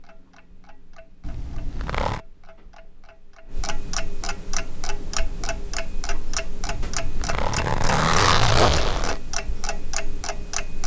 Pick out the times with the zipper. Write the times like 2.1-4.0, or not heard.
1.2-2.2, 6.7-9.2.